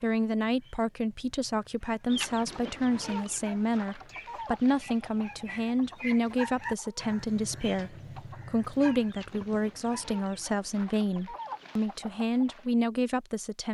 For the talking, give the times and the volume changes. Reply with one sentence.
The talking can be heard from 0.0 to 13.7 s, at a steady volume.